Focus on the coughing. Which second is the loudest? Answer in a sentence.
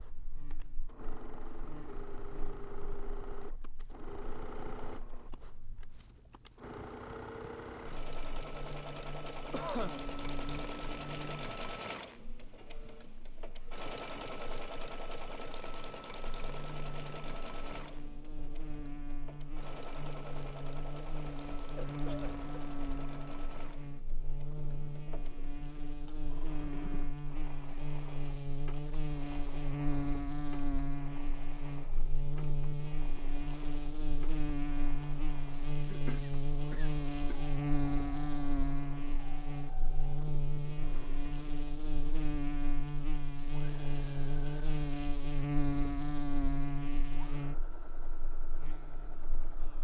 The volume of the coughing peaks at 10 seconds.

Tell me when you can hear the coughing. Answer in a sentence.
You can hear the coughing from 9.5 to 10.1 s, from 21.6 to 22.5 s and from 35.8 to 37.4 s.